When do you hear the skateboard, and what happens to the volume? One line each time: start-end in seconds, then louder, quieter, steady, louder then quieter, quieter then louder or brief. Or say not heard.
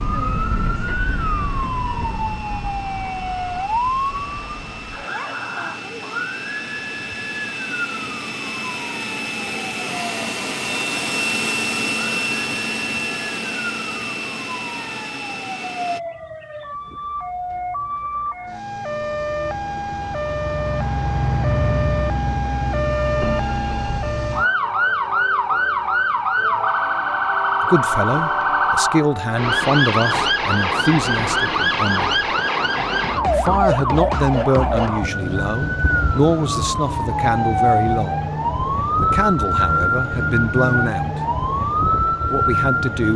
not heard.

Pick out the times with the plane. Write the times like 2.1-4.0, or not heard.
0.0-16.0.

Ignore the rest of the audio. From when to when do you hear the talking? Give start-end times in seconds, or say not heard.
27.6-32.2, 33.3-38.3, 39.0-41.2, 42.3-43.1.